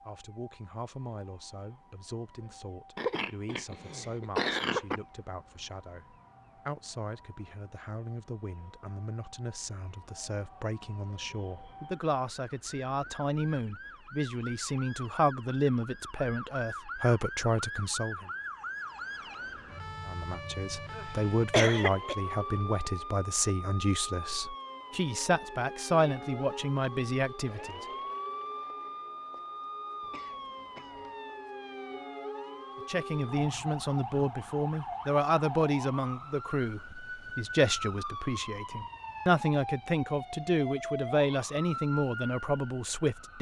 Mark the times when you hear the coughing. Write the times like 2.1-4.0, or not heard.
3.0-5.0, 21.5-22.1, 30.0-31.2.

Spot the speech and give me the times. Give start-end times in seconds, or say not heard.
0.1-18.3, 20.1-27.9, 32.9-43.3.